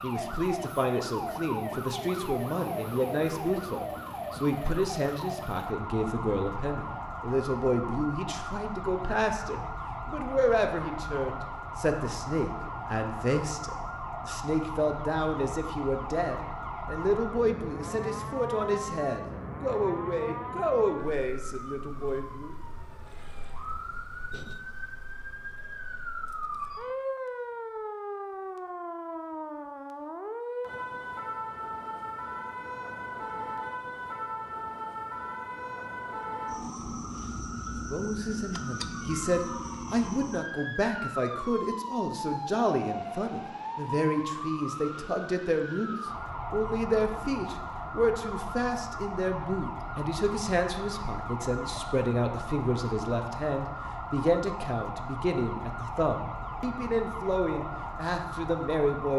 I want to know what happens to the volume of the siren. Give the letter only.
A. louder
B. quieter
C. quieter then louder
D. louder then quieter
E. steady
E.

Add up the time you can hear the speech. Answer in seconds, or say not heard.
44 s.